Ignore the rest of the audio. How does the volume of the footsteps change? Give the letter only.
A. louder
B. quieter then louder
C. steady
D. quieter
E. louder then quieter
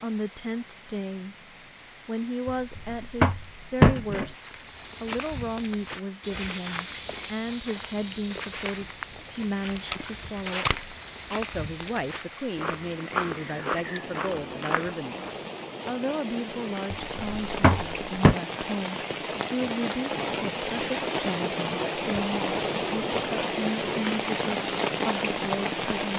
C.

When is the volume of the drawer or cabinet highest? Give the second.
4 s.